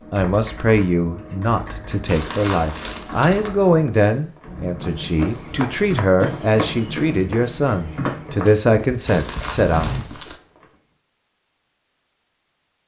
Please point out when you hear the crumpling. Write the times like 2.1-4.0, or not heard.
2.0-3.5, 9.1-10.4.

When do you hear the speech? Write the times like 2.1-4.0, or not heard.
0.1-9.8.